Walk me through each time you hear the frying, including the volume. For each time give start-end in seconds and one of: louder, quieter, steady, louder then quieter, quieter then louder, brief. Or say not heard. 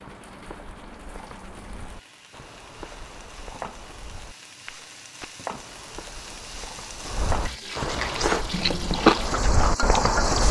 0.0-10.4 louder.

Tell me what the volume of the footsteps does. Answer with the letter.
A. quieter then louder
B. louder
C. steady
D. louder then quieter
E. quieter
B.